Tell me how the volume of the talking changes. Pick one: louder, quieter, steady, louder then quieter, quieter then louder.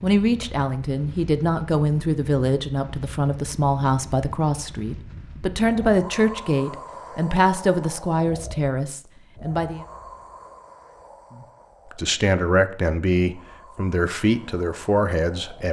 steady.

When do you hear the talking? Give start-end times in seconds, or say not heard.
0.0-9.8, 11.3-15.6.